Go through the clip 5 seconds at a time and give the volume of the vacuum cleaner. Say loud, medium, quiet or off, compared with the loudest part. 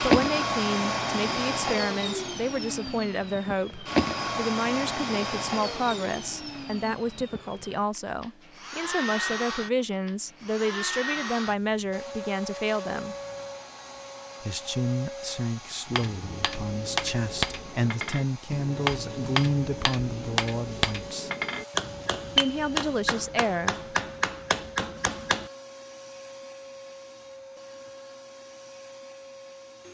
loud, medium, medium, quiet, quiet, quiet.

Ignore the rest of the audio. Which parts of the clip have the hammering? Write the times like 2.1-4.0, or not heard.
15.8-25.5.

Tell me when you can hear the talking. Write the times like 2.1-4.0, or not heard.
0.0-13.2, 14.4-21.3, 22.4-23.8.